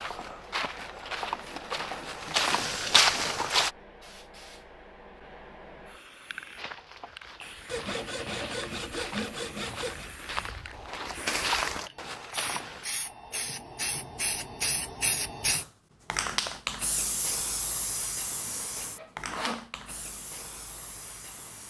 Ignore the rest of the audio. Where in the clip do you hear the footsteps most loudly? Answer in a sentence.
The volume of the footsteps peaks at 3 seconds.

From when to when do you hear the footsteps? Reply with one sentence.
The footsteps can be heard from 0.0 to 3.7 s and from 6.5 to 12.8 s.